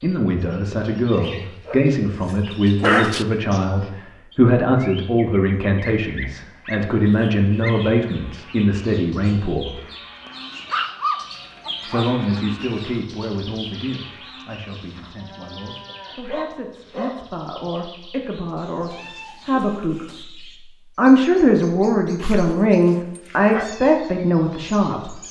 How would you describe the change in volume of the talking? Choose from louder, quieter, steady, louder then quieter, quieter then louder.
quieter then louder.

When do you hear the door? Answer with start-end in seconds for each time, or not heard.
not heard.